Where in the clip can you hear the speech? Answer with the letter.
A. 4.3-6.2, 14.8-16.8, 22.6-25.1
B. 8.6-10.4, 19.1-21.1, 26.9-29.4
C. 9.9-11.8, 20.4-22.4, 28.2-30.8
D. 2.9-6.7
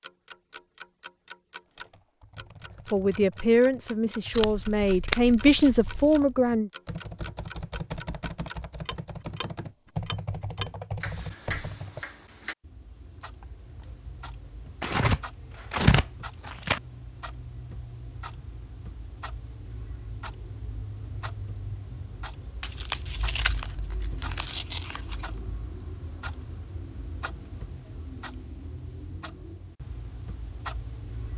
D.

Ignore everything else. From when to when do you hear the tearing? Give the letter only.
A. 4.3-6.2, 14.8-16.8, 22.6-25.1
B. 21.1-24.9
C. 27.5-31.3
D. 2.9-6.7
A.